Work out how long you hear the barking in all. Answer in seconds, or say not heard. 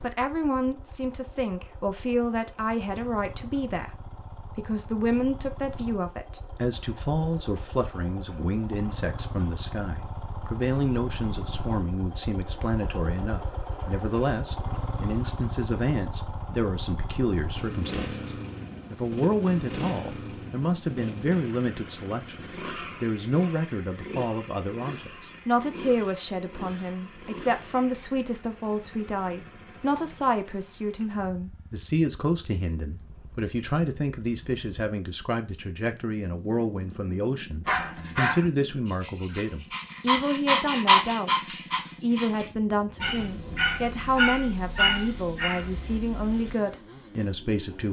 9 s.